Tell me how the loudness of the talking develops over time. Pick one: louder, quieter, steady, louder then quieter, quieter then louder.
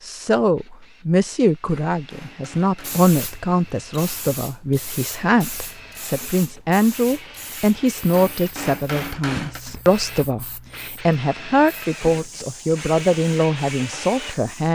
steady.